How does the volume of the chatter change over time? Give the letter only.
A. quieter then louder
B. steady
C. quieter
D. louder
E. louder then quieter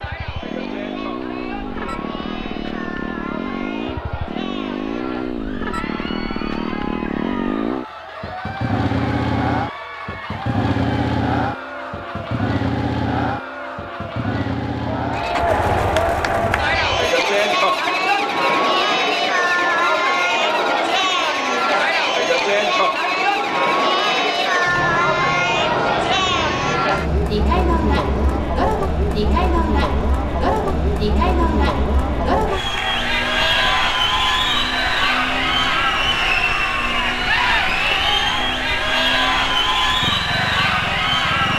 D.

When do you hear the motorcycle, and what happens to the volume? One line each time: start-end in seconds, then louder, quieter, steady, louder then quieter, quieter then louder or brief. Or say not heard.
0.0-41.5 quieter.